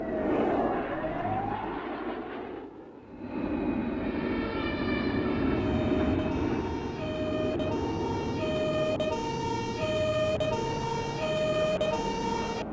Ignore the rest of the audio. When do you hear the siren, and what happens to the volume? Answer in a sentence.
You can hear the siren briefly from 0.0 to 1.9 s; and from 4.0 to 12.6 s, getting louder.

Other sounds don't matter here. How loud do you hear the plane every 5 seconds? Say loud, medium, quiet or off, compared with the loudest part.
loud, loud, medium.